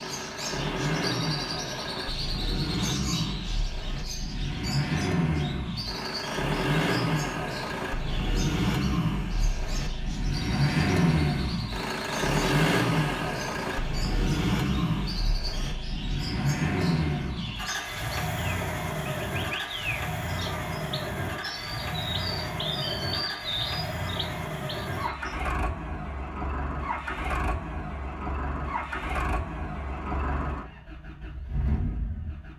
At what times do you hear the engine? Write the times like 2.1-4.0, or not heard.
0.0-32.5.